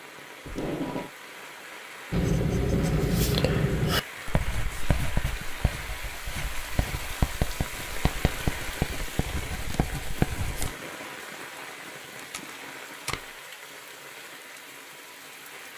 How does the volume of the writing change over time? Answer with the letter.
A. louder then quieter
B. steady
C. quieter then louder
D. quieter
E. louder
C.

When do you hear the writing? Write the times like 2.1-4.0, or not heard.
2.1-10.8.